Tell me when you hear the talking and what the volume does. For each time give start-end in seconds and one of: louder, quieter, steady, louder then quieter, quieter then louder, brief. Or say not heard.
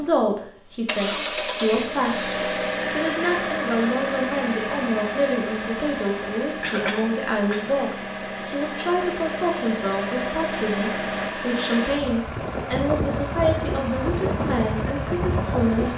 0.0-15.9 steady.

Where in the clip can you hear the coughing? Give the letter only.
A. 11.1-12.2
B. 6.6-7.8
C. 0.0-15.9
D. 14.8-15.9
B.